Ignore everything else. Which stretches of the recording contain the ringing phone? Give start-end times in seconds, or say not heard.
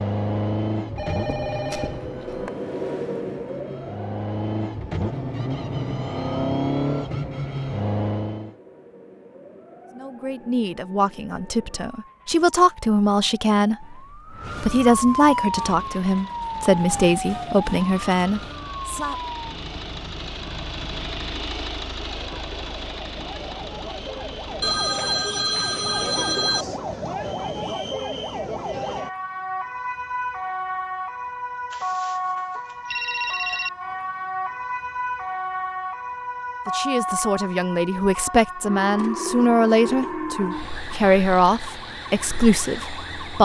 0.9-2.5, 24.6-26.6, 31.7-33.7.